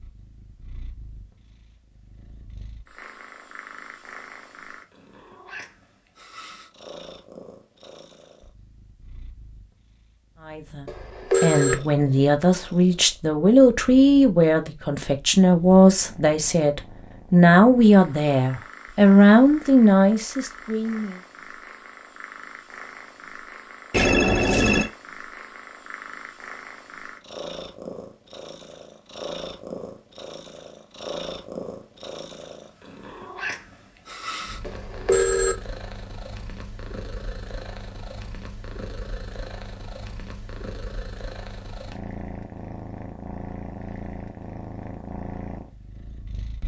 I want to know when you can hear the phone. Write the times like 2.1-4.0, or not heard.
10.8-11.8, 23.9-24.9, 34.6-35.5.